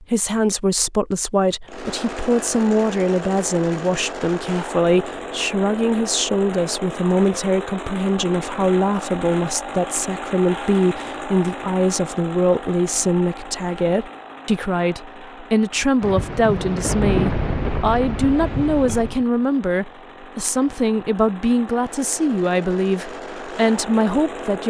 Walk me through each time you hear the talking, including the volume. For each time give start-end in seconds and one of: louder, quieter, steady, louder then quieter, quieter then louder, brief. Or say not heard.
0.0-24.6 steady.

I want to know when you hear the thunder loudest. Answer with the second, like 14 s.
17 s.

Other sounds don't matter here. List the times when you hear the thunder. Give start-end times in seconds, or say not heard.
16.0-19.2.